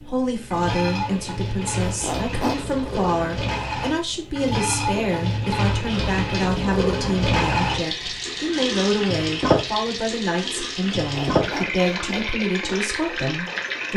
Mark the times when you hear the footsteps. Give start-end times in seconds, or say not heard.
not heard.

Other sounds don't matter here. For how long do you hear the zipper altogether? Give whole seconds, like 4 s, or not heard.
2 s.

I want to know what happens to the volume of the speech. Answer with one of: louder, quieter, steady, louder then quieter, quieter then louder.
steady.